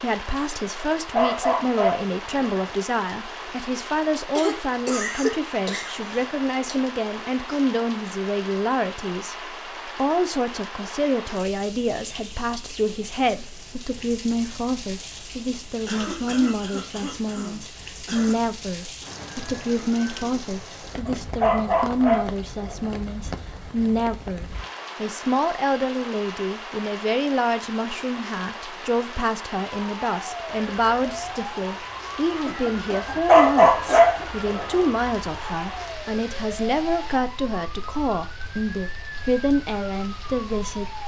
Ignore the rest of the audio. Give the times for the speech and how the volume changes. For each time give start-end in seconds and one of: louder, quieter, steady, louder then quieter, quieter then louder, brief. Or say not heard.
0.0-41.0 steady.